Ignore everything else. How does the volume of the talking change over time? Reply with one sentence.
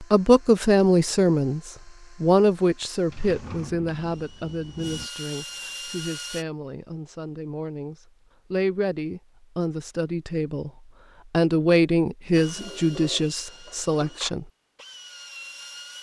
The volume of the talking goes down, then up.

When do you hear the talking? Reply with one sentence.
You can hear the talking from 0.0 to 10.7 s and from 11.3 to 14.4 s.